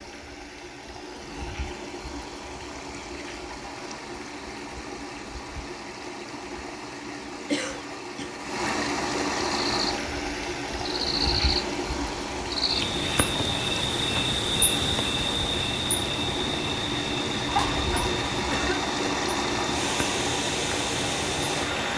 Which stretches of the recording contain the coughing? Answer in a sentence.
You can hear the coughing from 7.5 to 8.3 s and from 17.4 to 18.8 s.